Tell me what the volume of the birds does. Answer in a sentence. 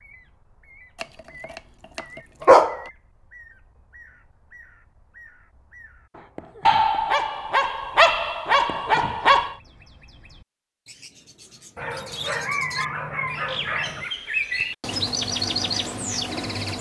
The loudness of the birds goes up.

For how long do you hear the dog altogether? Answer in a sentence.
The dog can be heard for 7 seconds in total.